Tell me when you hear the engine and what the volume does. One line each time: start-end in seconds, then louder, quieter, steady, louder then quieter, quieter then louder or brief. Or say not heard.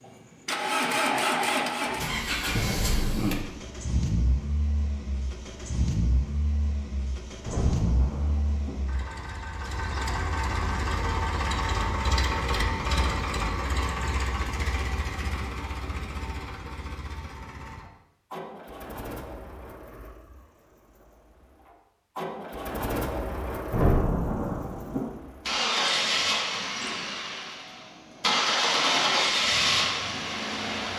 0.1-30.9 quieter then louder.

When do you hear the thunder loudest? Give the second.
24 s.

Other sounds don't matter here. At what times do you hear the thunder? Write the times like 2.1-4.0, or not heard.
7.4-8.8, 23.7-25.1.